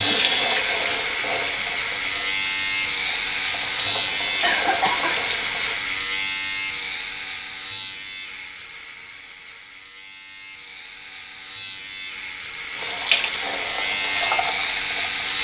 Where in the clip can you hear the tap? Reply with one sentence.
The tap can be heard from 0.0 to 5.8 s and from 12.7 to 15.3 s.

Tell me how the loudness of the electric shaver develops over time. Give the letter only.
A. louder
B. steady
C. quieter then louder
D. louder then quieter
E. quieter
C.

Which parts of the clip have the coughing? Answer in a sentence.
You can hear the coughing from 4.4 to 5.1 s.